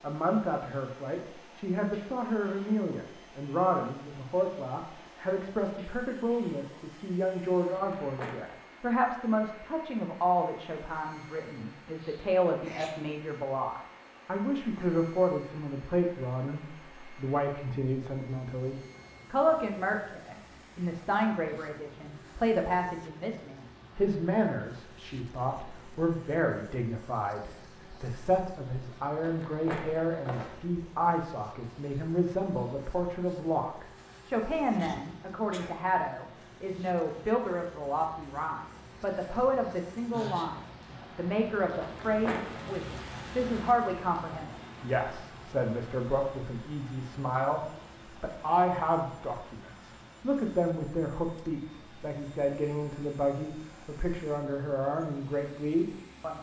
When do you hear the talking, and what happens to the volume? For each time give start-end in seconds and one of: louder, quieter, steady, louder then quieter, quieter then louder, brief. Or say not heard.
0.0-56.3 steady.